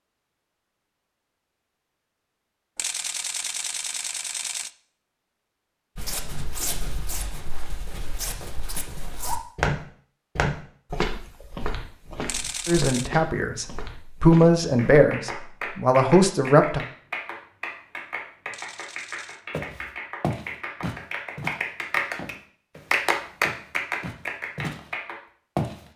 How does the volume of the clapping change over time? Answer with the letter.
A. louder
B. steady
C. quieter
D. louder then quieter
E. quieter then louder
A.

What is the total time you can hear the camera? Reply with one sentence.
You can hear the camera for 4 seconds altogether.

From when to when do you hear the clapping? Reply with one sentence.
You can hear the clapping from 14.8 to 25.1 s.